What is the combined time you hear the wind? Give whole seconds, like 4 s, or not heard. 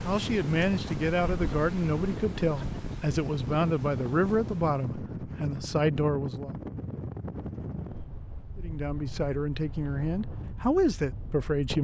12 s.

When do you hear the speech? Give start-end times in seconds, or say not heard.
0.1-6.5, 8.6-11.7.